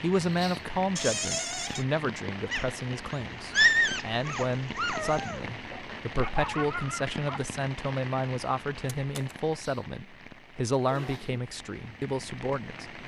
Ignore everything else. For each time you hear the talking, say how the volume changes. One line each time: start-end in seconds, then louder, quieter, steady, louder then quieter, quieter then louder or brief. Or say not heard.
0.0-12.9 steady.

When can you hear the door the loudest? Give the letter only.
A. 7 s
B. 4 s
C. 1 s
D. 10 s
C.